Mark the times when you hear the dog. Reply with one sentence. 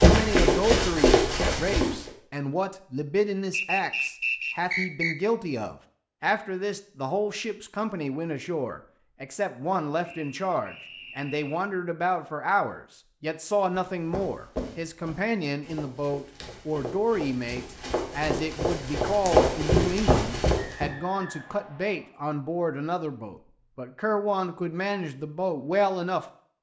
You can't hear the dog here.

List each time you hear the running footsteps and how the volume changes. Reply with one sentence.
You can hear the running footsteps briefly from 0.0 to 1.9 s; and from 13.7 to 20.9 s, getting quieter then louder.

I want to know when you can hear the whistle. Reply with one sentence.
The whistle can be heard from 3.5 to 5.2 s, from 10.0 to 11.7 s and from 20.6 to 22.1 s.